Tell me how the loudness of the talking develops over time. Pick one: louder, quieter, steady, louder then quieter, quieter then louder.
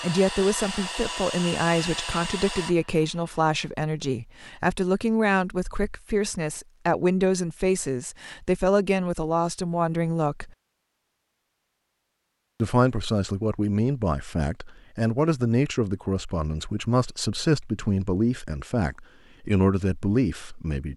steady.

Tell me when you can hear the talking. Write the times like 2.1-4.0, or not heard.
0.0-10.5, 12.6-20.9.